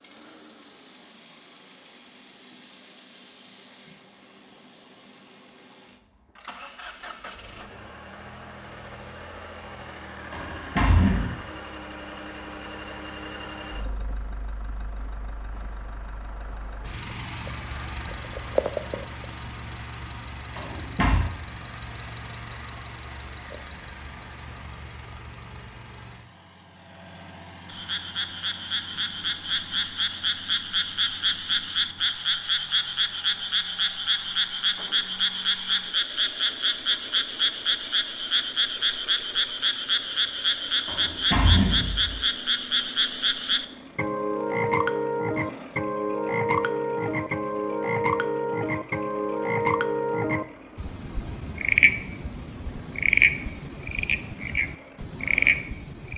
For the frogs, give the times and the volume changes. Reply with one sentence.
The frogs can be heard from 27.6 to 56.1 s, at a steady volume.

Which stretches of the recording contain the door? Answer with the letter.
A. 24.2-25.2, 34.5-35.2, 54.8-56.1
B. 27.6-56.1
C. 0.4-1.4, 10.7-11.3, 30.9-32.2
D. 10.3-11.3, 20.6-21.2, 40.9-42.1
D.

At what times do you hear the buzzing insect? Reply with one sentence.
You can't hear the buzzing insect here.